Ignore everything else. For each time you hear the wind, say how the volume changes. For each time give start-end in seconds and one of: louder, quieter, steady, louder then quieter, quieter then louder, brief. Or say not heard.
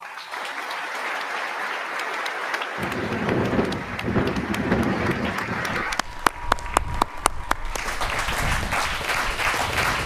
2.8-10.0 quieter then louder.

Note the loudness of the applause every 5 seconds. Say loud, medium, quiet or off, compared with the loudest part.
medium, loud.